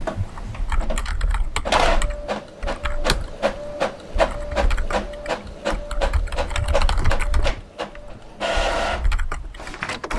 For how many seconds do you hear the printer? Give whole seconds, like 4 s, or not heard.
10 s.